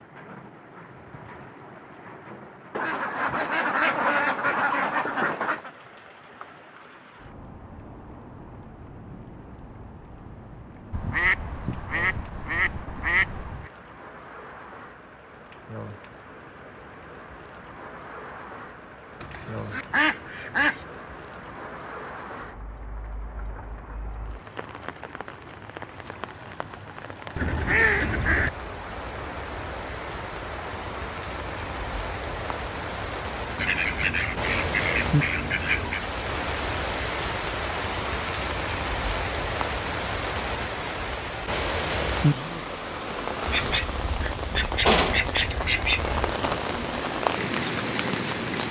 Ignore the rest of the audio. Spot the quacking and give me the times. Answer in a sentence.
The quacking can be heard from 2.7 to 5.7 s, from 10.9 to 13.7 s, from 19.2 to 20.9 s, from 27.4 to 28.5 s, from 33.5 to 36.1 s and from 43.5 to 46.2 s.